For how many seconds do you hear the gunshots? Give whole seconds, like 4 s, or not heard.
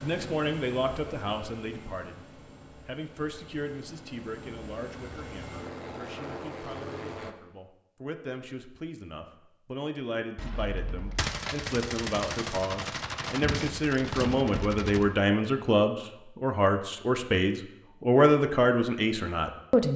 5 s.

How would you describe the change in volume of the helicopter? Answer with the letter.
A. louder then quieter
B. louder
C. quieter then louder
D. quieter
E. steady
C.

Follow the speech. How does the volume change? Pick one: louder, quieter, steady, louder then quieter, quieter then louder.
quieter then louder.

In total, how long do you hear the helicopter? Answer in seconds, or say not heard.
7 s.